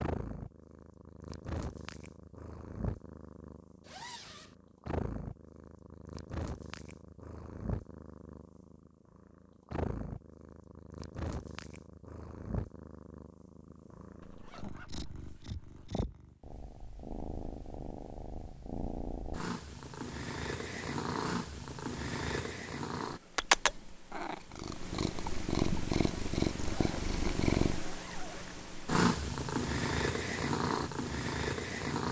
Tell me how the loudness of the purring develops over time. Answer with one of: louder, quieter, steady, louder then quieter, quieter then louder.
louder.